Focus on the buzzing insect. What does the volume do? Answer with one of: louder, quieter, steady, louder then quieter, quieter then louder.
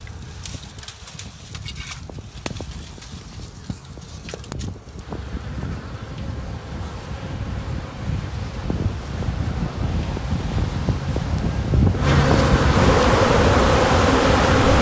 louder.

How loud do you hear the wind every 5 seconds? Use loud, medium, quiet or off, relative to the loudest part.
quiet, medium, loud.